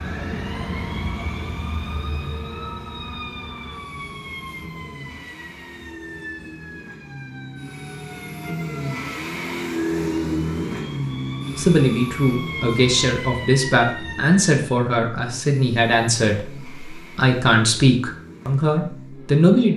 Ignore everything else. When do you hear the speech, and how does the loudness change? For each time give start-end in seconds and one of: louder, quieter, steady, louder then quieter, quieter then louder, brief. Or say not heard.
11.6-19.7 steady.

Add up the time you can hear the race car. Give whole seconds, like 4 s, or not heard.
20 s.